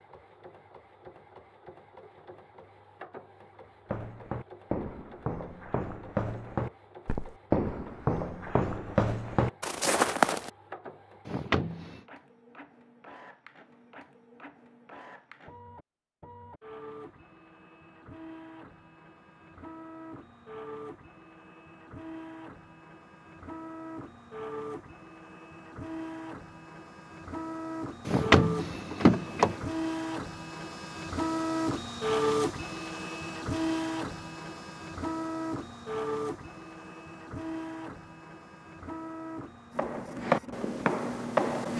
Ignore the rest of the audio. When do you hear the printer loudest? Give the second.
32 s.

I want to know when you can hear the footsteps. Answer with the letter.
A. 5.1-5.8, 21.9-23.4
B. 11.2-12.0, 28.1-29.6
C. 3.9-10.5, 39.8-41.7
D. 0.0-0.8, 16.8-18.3
C.